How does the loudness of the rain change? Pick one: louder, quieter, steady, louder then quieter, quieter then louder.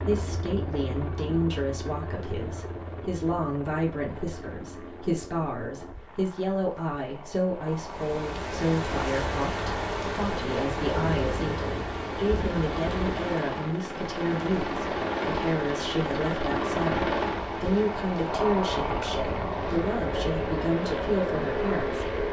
quieter.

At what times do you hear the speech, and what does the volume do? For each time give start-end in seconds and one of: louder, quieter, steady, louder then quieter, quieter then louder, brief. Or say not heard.
0.0-22.1 steady.